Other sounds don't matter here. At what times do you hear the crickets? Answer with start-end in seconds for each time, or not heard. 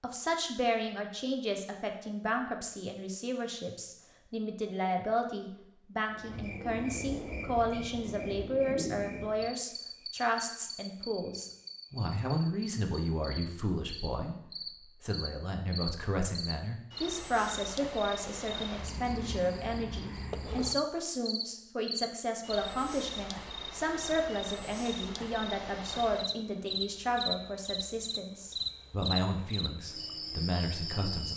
6.1-31.3.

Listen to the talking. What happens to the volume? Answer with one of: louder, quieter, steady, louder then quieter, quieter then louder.
steady.